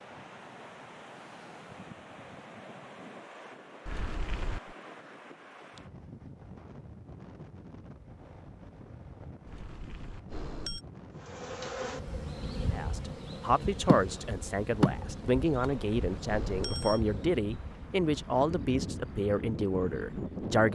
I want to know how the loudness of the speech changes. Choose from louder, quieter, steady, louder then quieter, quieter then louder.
steady.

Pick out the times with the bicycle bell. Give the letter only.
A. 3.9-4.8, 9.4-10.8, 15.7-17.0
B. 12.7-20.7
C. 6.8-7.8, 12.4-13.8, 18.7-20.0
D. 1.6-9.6
A.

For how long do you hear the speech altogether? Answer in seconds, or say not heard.
8 s.